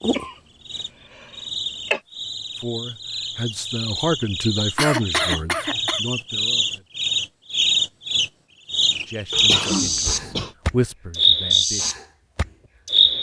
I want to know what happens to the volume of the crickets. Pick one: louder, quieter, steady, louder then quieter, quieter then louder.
louder.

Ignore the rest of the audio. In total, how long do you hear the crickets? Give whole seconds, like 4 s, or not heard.
13 s.